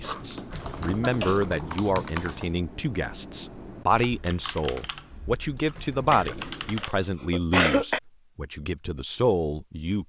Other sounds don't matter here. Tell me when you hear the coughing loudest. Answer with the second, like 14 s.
8 s.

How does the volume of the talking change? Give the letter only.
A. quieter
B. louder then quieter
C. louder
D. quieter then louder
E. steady
E.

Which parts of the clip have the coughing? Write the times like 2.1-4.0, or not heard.
0.0-1.5, 6.1-8.0.